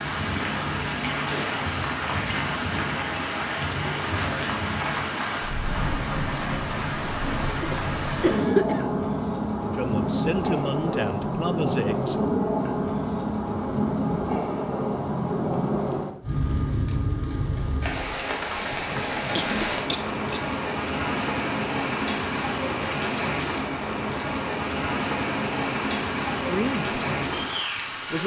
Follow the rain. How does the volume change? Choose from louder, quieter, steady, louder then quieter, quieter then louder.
steady.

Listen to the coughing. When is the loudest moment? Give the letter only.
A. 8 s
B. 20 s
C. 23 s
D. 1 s
A.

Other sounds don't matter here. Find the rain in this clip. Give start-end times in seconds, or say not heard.
0.0-28.2.